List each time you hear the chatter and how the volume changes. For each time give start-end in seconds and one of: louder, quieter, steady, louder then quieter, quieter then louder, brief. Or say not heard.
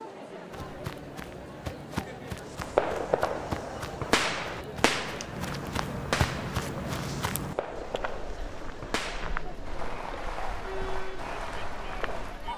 0.0-12.5 steady.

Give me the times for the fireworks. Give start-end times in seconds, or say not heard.
2.5-12.4.